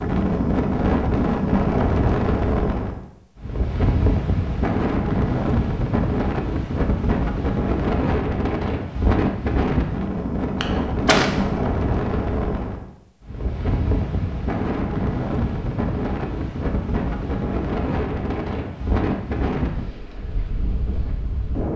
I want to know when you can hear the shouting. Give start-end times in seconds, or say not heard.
not heard.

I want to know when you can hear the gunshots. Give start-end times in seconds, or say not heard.
10.6-11.3.